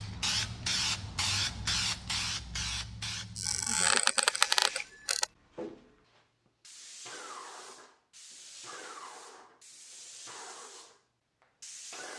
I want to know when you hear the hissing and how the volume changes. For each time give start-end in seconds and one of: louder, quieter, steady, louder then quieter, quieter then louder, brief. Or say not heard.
0.0-12.1 quieter.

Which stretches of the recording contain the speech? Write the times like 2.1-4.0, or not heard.
not heard.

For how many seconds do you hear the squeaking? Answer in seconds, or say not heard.
2 s.